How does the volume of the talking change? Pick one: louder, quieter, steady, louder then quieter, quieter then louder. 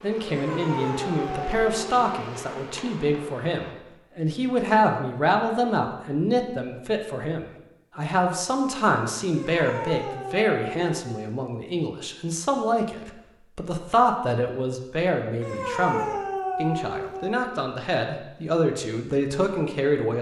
steady.